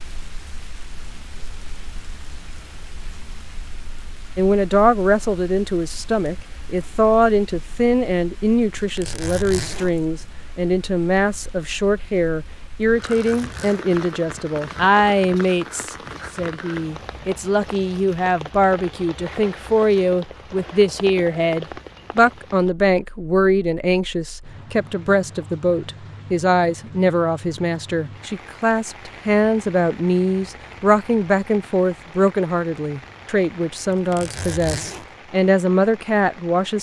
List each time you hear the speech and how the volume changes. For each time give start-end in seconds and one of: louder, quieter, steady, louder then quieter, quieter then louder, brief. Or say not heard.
4.3-36.7 steady.